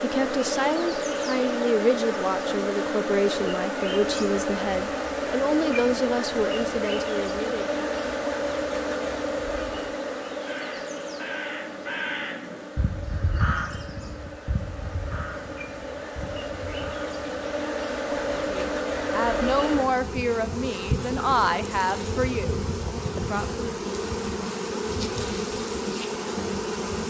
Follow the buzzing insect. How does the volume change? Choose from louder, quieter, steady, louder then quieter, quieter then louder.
quieter then louder.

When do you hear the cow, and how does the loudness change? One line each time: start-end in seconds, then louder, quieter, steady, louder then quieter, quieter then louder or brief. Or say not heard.
not heard.